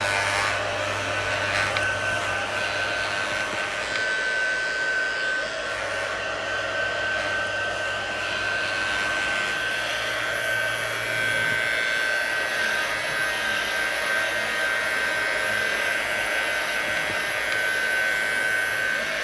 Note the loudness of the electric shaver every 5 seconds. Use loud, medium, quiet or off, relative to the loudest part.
loud, medium, loud, loud.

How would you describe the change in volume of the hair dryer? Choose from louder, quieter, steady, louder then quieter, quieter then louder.
steady.